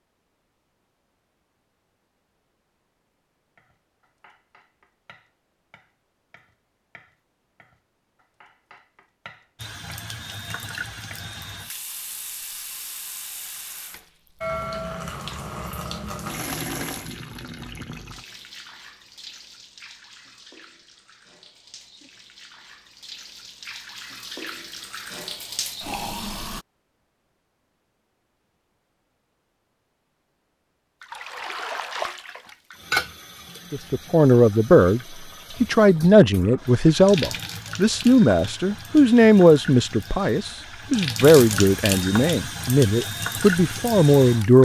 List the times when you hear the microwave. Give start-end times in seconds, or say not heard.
not heard.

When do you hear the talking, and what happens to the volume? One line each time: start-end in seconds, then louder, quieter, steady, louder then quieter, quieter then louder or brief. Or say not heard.
33.7-35.0 brief
35.6-44.6 steady.